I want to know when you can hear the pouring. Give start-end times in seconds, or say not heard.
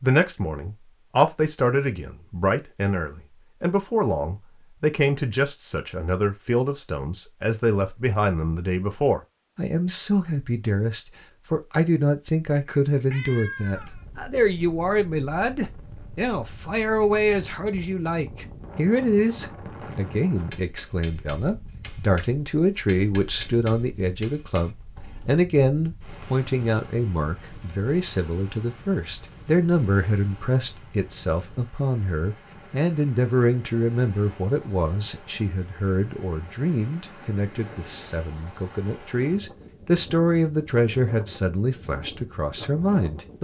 not heard.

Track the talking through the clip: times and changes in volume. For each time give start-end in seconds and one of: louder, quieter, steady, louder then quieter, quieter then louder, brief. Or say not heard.
0.0-43.3 steady.